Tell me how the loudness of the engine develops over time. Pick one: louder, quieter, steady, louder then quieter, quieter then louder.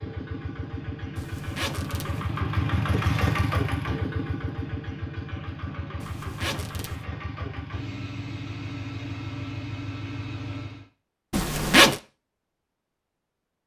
louder then quieter.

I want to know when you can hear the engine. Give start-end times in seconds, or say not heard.
0.0-10.8.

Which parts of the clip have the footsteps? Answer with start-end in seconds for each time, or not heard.
not heard.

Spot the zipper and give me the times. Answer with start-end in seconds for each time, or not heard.
1.1-2.4, 6.0-7.0, 11.3-12.0.